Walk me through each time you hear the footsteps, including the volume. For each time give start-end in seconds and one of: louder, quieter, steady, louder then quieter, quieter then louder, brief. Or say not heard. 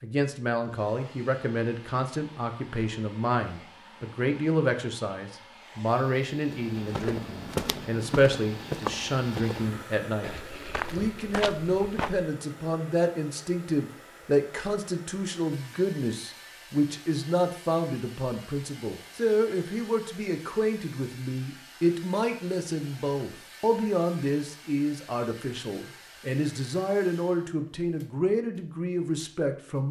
6.5-12.2 quieter then louder.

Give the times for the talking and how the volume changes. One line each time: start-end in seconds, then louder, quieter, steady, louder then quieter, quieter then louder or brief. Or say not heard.
0.0-29.8 steady.